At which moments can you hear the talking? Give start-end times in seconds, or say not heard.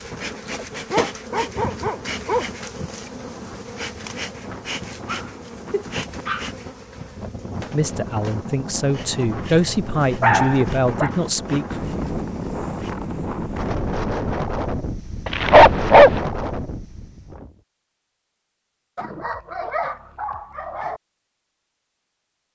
7.7-11.8.